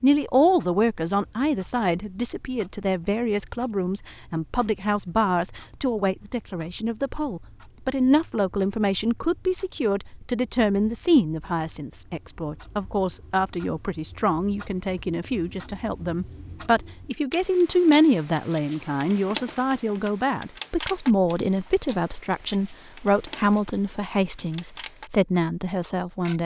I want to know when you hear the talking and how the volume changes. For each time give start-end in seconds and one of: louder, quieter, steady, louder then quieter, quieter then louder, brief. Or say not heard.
0.0-26.4 steady.